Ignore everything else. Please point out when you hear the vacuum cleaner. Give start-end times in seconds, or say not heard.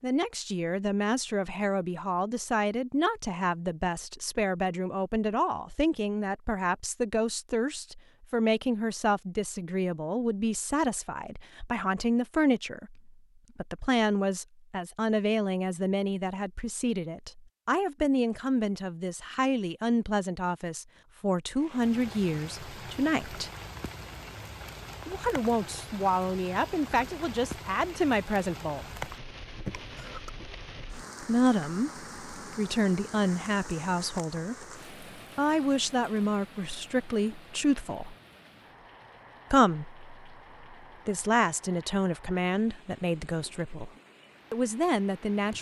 not heard.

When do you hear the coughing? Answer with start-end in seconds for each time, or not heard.
29.6-30.3.